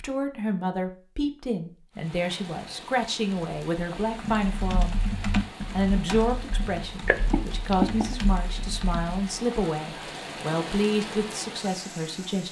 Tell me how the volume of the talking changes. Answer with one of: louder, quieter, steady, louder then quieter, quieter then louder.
steady.